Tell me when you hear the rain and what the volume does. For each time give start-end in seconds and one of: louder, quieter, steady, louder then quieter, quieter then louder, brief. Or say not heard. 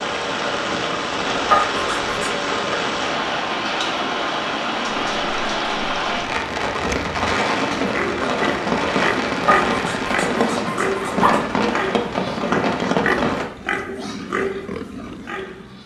0.0-13.4 steady.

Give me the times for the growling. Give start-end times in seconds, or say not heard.
1.5-2.4, 9.4-11.4.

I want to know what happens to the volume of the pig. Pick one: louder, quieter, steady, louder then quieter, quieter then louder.
steady.